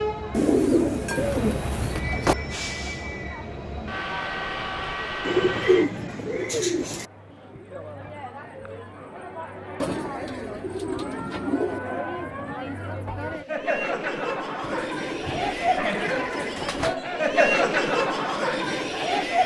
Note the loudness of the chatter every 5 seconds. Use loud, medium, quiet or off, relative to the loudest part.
quiet, quiet, medium, loud.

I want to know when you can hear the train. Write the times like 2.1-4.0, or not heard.
0.0-6.3.